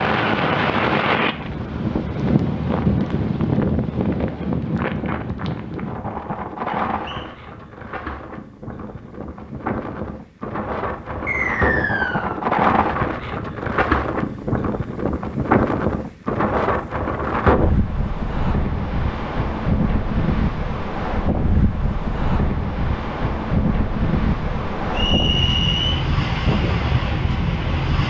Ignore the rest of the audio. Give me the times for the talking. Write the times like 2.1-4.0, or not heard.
not heard.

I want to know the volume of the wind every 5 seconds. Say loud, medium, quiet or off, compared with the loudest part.
loud, medium, loud, loud, loud, loud.